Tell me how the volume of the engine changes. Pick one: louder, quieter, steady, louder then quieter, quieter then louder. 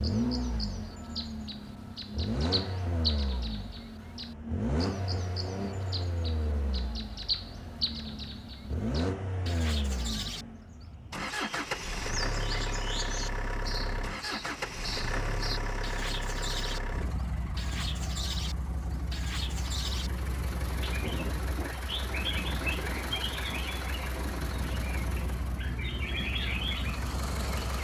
steady.